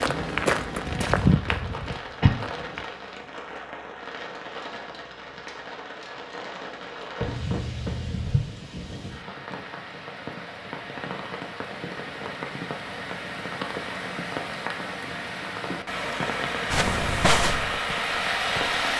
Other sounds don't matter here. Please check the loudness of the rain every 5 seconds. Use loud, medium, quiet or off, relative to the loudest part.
medium, medium, medium, loud.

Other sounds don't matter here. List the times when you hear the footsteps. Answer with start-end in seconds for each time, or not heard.
0.0-2.9, 16.7-18.9.